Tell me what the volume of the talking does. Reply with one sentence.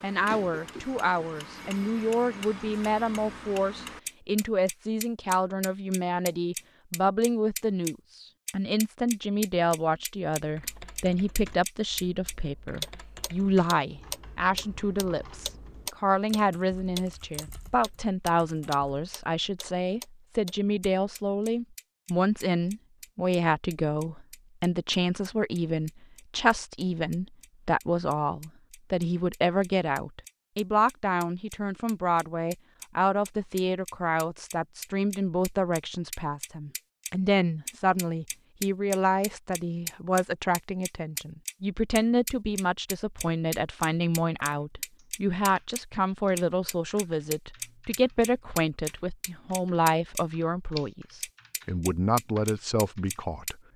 The loudness of the talking stays about the same.